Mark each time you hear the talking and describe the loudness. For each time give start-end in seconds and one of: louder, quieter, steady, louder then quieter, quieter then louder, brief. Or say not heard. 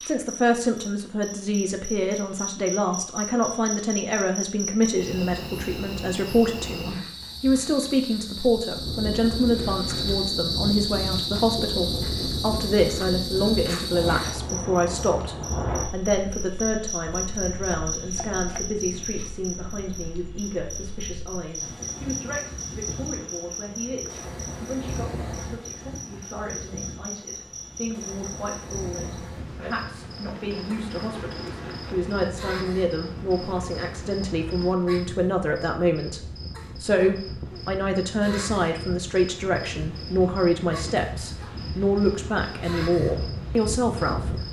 0.1-44.4 quieter then louder.